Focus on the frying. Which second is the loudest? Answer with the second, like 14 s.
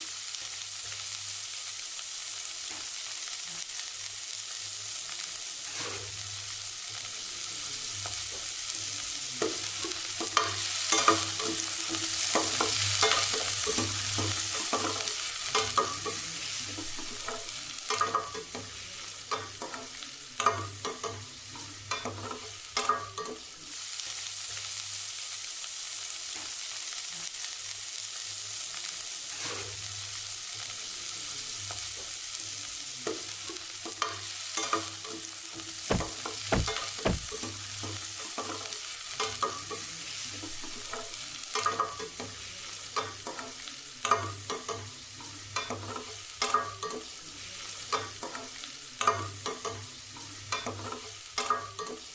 11 s.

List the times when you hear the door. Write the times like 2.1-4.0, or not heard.
35.9-37.3.